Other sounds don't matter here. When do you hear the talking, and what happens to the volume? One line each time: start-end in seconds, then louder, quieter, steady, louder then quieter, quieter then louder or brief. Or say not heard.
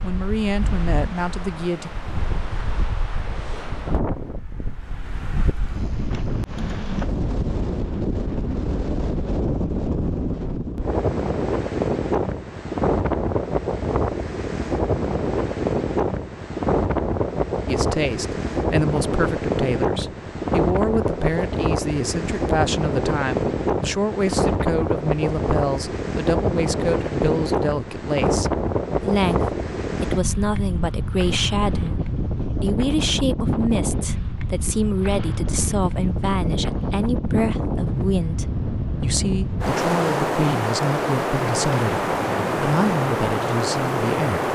0.0-1.9 brief
17.6-44.5 steady.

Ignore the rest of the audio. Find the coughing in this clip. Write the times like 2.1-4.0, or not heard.
not heard.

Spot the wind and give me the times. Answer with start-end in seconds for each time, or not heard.
0.0-44.5.